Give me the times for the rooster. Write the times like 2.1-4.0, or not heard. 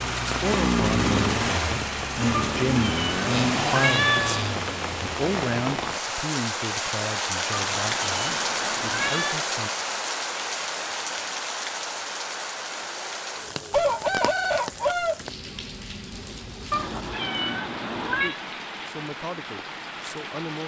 13.7-15.2.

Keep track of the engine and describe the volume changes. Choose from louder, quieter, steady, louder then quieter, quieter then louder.
quieter.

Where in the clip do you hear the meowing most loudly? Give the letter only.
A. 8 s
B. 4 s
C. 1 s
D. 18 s
B.